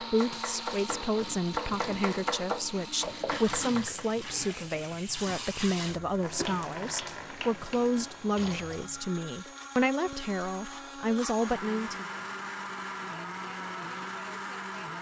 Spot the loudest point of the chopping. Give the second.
2 s.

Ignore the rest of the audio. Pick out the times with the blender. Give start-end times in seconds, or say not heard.
0.0-14.9.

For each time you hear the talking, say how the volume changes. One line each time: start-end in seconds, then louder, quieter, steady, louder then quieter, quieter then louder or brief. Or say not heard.
0.0-12.1 steady.